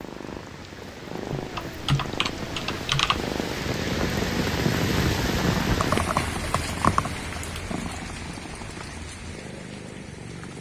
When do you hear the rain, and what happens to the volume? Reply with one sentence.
The rain can be heard from 0.0 to 10.5 s, getting louder then quieter.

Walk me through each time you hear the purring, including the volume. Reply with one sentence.
The purring can be heard from 0.0 to 10.5 s, getting louder then quieter.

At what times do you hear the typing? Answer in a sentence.
The typing can be heard from 1.3 to 3.2 s and from 5.8 to 7.5 s.